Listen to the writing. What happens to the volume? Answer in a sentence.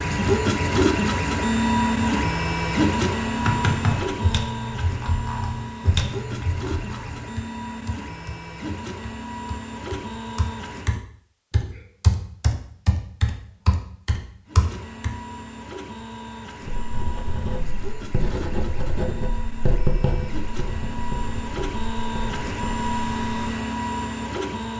The loudness of the writing goes up, then down.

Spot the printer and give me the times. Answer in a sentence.
The printer can be heard from 0.0 to 11.1 s and from 14.4 to 24.7 s.